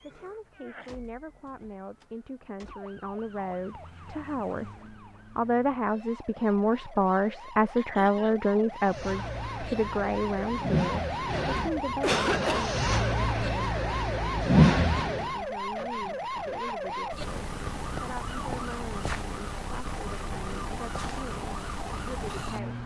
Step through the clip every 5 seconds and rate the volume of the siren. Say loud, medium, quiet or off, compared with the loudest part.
quiet, medium, loud, loud, loud.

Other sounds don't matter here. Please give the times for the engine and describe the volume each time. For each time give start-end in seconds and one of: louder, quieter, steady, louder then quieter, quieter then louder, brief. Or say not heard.
8.8-15.4 louder.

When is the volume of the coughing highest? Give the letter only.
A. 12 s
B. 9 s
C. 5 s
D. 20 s
A.